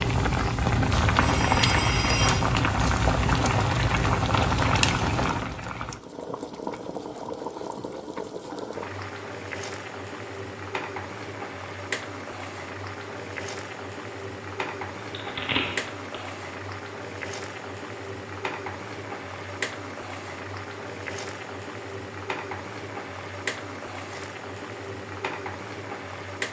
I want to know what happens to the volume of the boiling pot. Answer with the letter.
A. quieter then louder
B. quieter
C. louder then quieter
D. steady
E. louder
B.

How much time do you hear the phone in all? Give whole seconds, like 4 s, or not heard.
3 s.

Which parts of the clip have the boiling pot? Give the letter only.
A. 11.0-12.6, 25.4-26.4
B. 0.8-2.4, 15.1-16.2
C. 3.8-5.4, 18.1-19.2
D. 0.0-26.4
D.